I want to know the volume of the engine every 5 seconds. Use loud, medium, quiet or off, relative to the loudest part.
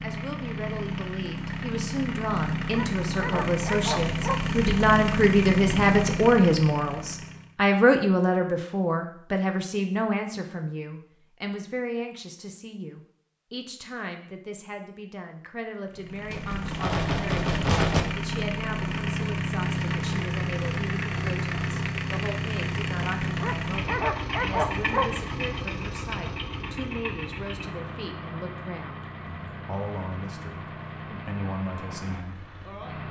loud, loud, off, loud, loud, medium, medium.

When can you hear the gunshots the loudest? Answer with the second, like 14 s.
18 s.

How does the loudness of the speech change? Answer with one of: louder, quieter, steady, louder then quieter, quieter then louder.
quieter.